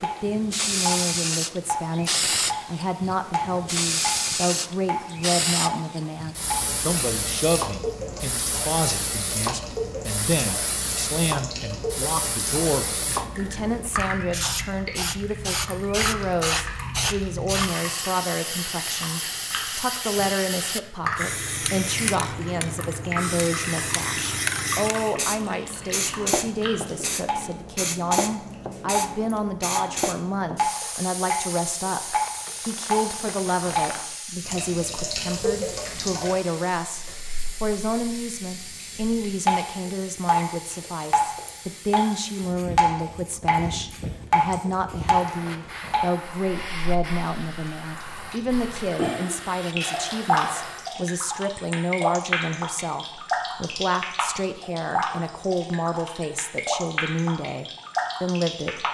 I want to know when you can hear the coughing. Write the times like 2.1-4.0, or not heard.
not heard.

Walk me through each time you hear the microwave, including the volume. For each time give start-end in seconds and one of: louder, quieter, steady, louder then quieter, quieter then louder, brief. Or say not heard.
not heard.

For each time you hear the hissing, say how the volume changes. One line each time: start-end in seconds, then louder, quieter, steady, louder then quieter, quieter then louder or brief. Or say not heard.
0.0-51.0 quieter.